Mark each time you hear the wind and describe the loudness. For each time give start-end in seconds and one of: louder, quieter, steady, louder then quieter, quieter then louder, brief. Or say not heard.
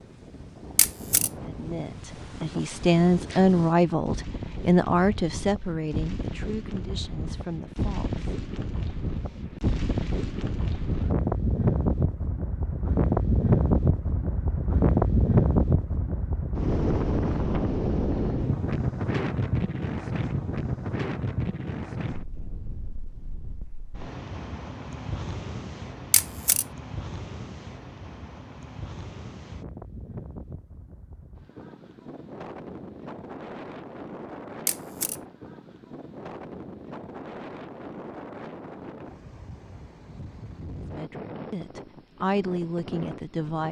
0.0-43.6 louder then quieter.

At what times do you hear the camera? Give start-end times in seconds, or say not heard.
0.8-1.3, 26.1-26.6, 34.6-35.2.